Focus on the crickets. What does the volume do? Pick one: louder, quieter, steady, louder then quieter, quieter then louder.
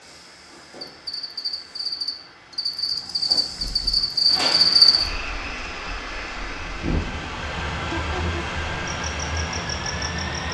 louder then quieter.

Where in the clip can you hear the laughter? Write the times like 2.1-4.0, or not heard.
7.8-8.4.